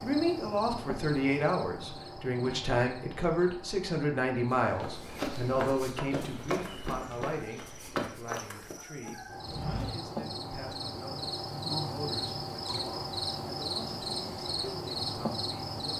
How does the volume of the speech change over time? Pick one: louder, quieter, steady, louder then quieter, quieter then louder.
quieter.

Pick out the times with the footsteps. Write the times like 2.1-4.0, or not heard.
4.5-10.2.